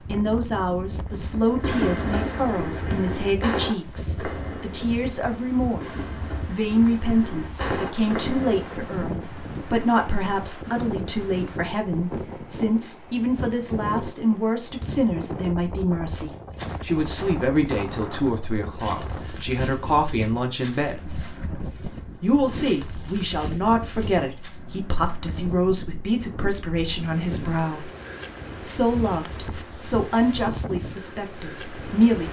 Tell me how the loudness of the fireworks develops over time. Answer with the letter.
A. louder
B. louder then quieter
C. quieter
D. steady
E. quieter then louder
E.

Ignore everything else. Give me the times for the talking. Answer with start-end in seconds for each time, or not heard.
0.1-21.2, 22.2-27.9, 28.6-32.2.